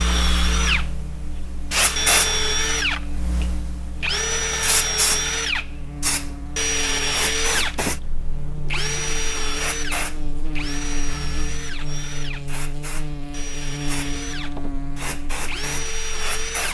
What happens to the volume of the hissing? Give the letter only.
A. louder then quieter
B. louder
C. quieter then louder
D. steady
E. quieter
E.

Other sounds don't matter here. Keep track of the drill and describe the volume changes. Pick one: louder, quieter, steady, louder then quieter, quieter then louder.
quieter.